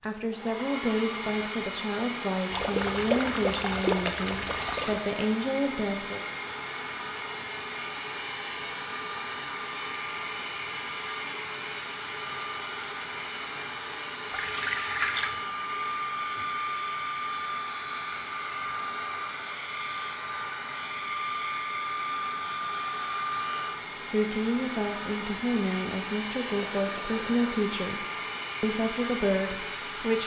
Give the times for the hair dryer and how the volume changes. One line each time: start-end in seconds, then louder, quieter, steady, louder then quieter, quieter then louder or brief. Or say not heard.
0.0-30.2 steady.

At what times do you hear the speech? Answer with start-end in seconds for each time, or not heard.
0.0-6.2, 24.1-30.2.